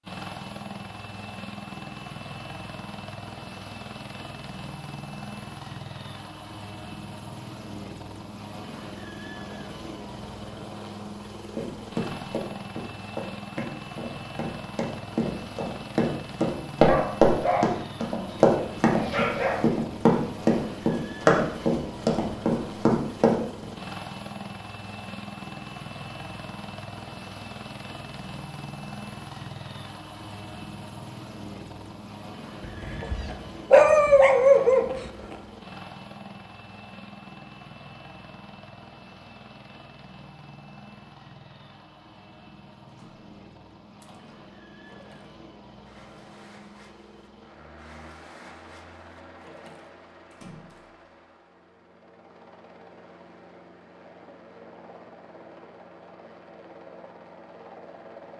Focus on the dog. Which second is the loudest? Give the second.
34 s.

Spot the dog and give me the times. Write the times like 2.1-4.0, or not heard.
16.9-19.6, 32.6-35.4.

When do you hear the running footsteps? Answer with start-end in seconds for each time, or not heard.
11.6-23.6.